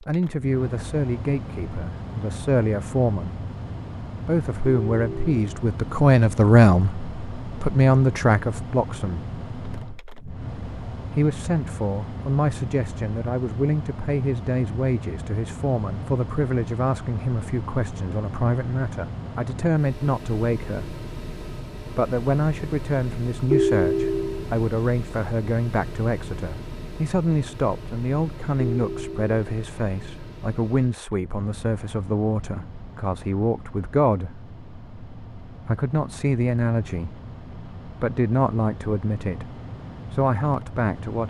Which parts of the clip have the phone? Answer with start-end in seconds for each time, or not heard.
4.7-5.6, 23.5-24.4, 28.6-29.3.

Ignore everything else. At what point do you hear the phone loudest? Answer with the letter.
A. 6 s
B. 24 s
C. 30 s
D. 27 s
B.